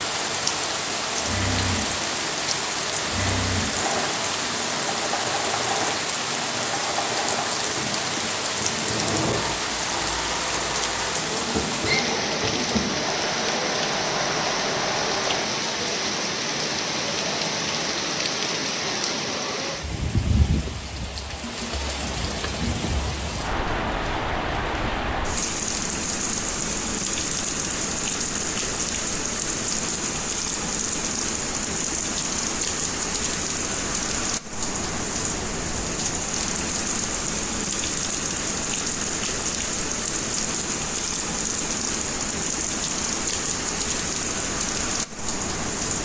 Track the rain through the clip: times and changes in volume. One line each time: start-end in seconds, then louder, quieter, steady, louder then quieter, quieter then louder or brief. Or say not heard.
0.0-46.0 steady.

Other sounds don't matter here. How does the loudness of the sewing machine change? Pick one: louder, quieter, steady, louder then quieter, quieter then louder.
steady.